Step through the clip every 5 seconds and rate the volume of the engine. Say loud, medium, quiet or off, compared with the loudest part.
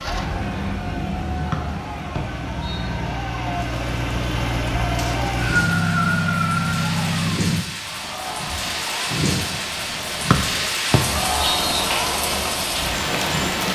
medium, loud, off.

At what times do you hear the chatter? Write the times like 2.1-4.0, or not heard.
0.1-13.6.